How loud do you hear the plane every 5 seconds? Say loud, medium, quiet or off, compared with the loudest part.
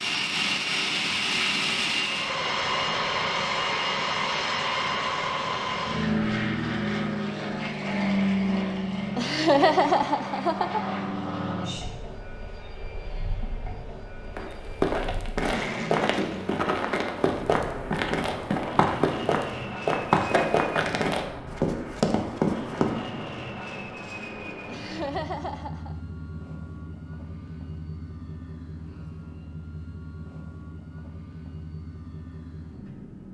loud, loud, medium, medium, medium, quiet, quiet.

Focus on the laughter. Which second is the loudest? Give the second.
10 s.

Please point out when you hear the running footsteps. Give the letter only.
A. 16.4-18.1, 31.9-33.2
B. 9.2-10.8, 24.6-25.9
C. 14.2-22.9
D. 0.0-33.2
C.